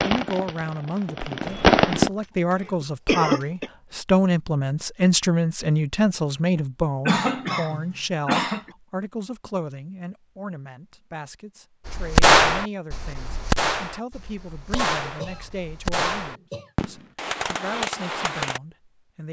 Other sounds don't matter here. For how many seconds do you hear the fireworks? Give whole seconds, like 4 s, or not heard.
9 s.